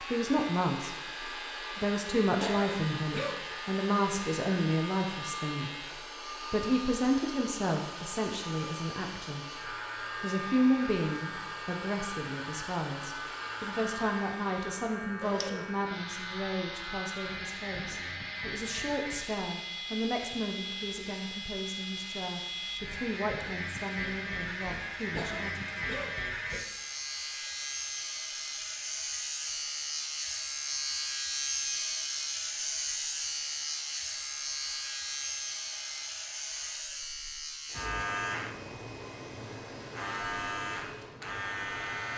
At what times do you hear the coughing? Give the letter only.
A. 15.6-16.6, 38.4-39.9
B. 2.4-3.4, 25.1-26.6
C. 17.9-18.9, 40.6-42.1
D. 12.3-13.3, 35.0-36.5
B.